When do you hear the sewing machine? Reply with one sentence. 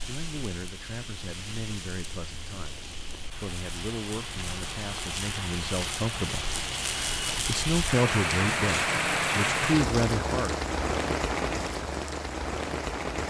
You can't hear the sewing machine here.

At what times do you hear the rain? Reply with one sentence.
You can hear the rain from 0.0 to 13.2 s.